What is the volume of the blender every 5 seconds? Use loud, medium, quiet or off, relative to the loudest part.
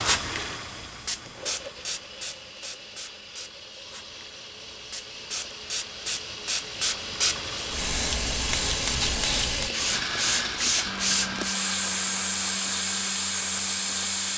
medium, loud, loud.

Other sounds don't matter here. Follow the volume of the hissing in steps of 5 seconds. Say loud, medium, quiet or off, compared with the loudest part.
medium, loud, loud.